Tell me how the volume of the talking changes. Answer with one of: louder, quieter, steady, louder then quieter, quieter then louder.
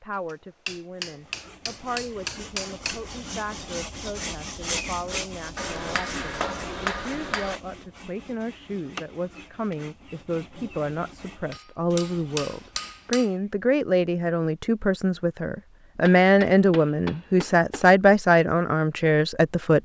louder.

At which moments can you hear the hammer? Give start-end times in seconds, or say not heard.
0.7-3.0, 5.5-7.5, 11.5-13.2, 16.1-17.9.